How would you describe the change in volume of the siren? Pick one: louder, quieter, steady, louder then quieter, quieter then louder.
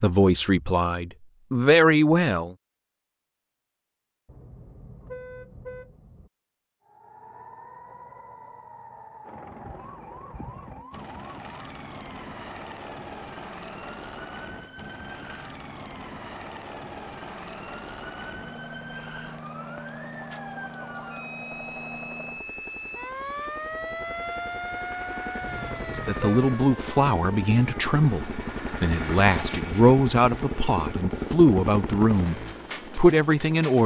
louder.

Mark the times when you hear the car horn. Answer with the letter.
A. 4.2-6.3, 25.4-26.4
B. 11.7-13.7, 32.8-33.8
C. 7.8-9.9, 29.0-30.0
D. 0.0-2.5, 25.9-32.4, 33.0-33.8
A.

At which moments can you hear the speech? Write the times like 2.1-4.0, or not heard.
0.0-2.5, 25.9-32.4, 33.0-33.8.